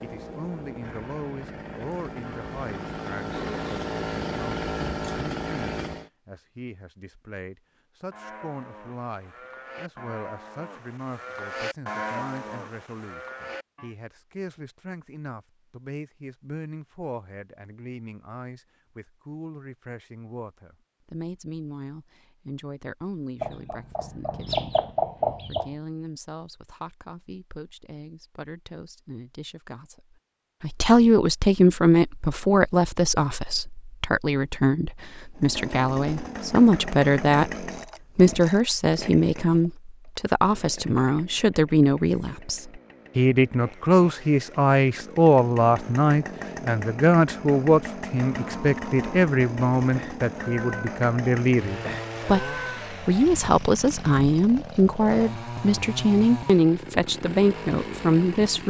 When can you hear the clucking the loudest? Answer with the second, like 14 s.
25 s.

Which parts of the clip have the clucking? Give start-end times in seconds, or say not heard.
23.4-25.6.